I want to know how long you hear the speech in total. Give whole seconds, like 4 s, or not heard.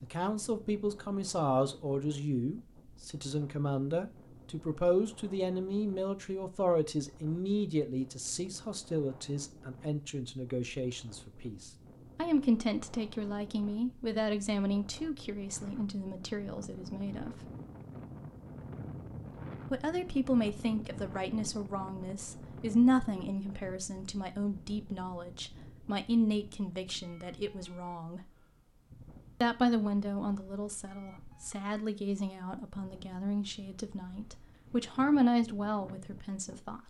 33 s.